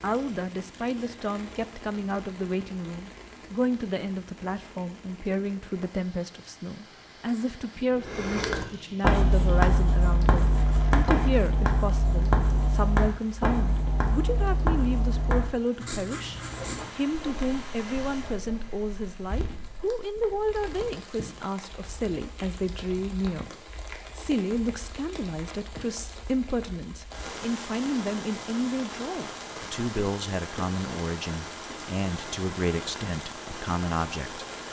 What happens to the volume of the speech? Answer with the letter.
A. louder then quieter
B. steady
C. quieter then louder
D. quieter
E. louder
B.